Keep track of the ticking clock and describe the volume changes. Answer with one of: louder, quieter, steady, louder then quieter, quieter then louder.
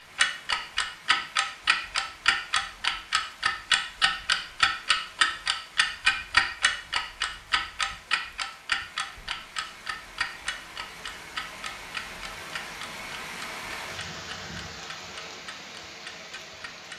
quieter.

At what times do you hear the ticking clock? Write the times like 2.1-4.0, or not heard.
0.1-16.9.